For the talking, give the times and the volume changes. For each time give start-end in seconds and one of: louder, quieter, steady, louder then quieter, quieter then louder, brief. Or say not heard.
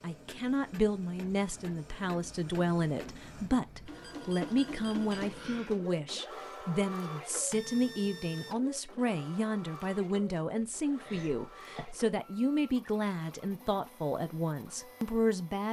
0.0-15.6 steady.